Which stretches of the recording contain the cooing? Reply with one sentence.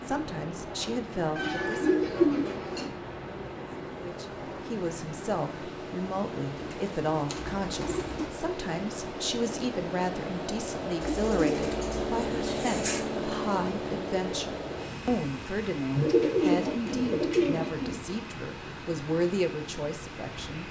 The cooing can be heard from 1.4 to 2.9 s, from 6.5 to 8.3 s, from 11.0 to 13.0 s and from 15.9 to 17.9 s.